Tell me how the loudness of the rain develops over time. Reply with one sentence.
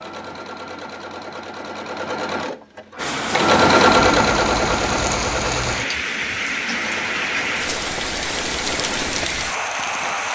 The volume of the rain stays about the same.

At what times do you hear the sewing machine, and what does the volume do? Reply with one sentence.
You can hear the sewing machine from 0.0 to 10.2 s, getting louder then quieter.